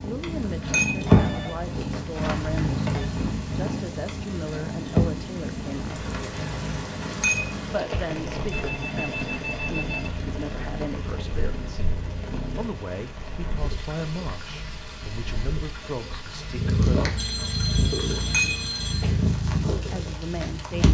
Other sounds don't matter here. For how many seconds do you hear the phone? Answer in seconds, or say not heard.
6 s.